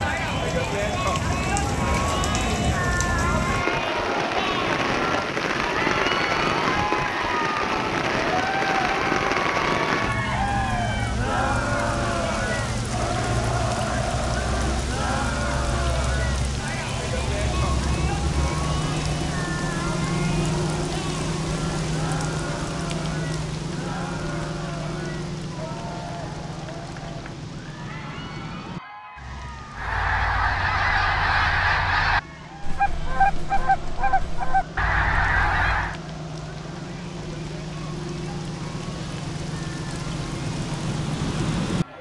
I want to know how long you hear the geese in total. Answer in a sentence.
The geese can be heard for 6 seconds in total.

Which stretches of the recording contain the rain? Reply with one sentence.
The rain can be heard from 0.0 to 41.9 s.